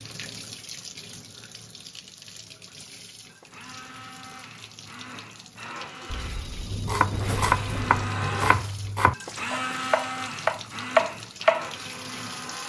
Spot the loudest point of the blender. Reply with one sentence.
The volume of the blender peaks at 10 seconds.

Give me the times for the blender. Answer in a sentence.
The blender can be heard from 3.2 to 12.6 s.